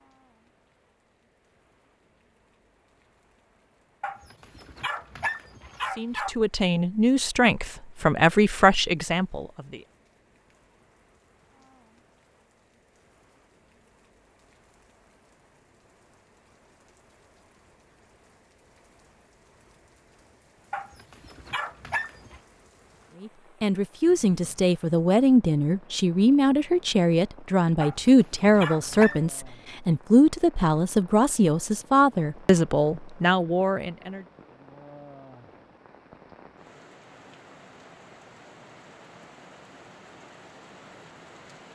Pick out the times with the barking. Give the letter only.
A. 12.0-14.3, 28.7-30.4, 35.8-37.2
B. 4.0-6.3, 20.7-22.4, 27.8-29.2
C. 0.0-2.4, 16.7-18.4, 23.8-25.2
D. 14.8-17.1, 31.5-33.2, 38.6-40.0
B.